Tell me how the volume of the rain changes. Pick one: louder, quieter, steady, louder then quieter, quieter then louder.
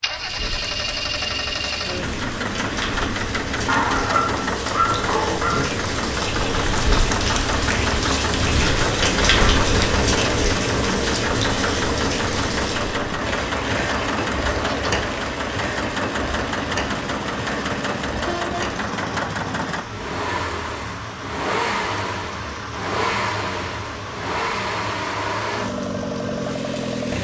louder then quieter.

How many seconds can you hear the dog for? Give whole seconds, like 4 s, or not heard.
2 s.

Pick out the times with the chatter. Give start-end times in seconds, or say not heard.
not heard.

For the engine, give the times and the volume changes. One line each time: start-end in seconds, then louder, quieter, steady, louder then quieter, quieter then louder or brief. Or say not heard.
0.0-27.1 steady.